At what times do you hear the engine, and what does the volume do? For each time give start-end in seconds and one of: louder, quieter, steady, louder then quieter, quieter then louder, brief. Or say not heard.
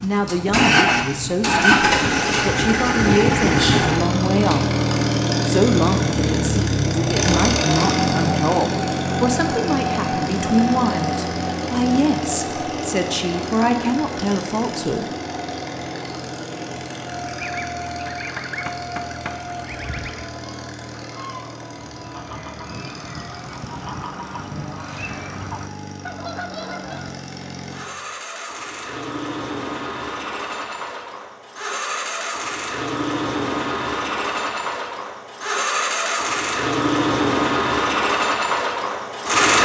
0.0-39.5 quieter then louder.